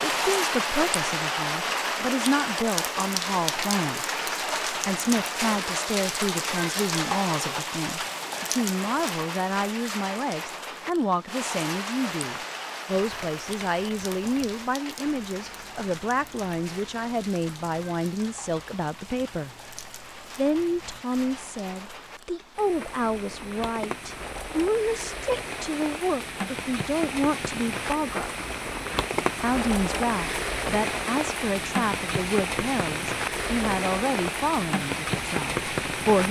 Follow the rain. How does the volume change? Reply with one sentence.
The loudness of the rain goes down, then up.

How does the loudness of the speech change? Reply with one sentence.
The volume of the speech stays about the same.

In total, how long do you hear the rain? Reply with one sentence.
The rain can be heard for 36 seconds in total.